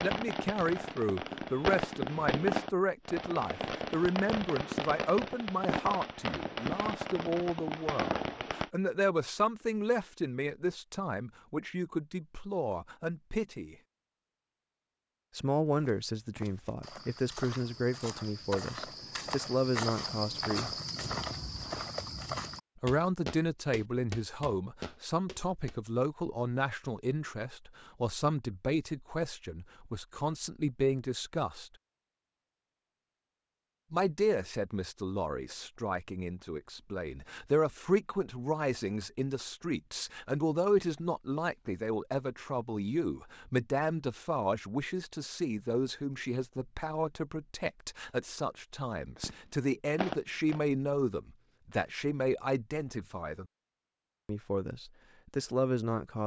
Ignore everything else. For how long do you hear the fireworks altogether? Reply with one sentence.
You can hear the fireworks for 10 seconds altogether.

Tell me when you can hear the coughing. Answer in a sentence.
The coughing can't be heard in this clip.